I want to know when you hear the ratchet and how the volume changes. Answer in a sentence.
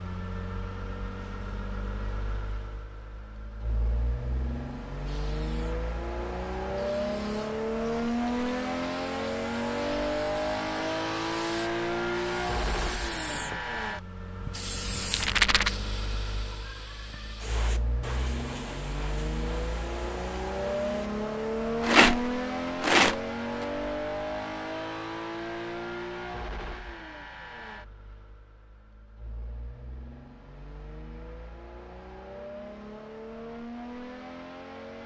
The ratchet can't be heard in this clip.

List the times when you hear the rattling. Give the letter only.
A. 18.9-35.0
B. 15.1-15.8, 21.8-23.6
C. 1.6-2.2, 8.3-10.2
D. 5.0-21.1
B.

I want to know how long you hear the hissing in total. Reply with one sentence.
You can hear the hissing for 16 seconds altogether.